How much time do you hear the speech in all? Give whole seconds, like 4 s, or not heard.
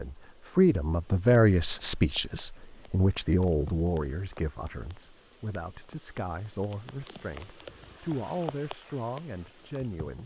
10 s.